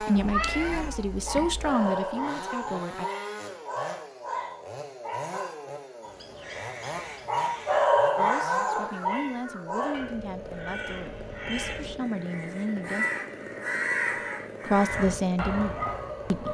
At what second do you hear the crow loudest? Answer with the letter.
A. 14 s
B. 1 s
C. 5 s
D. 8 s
A.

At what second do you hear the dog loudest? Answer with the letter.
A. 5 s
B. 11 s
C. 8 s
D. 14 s
C.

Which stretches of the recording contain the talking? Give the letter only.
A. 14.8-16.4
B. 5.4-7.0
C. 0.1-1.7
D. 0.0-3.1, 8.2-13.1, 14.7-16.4
D.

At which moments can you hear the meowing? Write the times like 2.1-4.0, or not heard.
0.1-1.7.